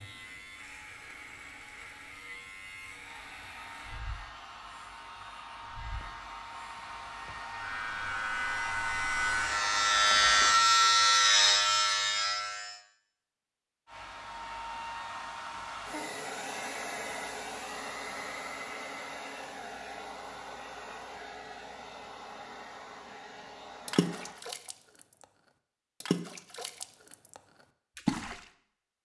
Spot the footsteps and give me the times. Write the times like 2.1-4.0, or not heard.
not heard.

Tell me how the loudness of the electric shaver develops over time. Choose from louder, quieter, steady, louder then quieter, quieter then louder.
quieter then louder.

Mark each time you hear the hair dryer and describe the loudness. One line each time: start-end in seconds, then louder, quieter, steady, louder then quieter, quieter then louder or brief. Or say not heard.
3.0-10.6 louder
13.8-24.4 quieter.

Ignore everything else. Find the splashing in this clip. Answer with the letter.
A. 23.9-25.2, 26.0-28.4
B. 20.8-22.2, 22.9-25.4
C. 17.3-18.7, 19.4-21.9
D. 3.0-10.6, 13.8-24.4
A.